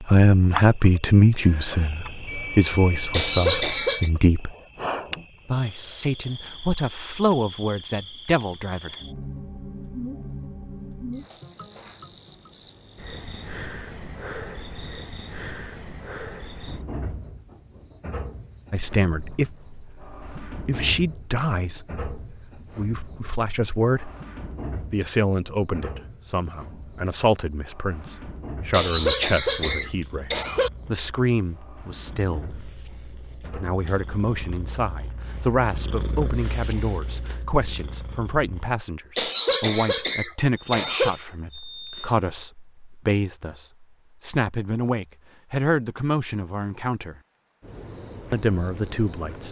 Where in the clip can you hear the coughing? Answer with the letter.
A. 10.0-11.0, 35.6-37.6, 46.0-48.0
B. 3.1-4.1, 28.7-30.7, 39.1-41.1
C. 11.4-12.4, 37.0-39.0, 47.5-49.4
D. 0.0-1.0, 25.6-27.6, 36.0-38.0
B.